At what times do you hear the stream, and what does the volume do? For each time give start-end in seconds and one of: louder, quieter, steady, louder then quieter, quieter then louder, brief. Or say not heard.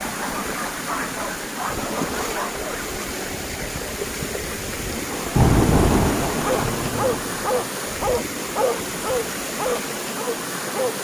0.0-10.9 steady.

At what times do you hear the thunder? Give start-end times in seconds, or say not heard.
4.9-7.6.